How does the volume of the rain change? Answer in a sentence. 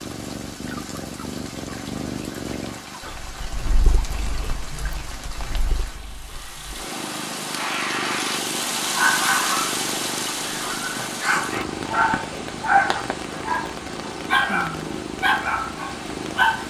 The loudness of the rain goes up, then down.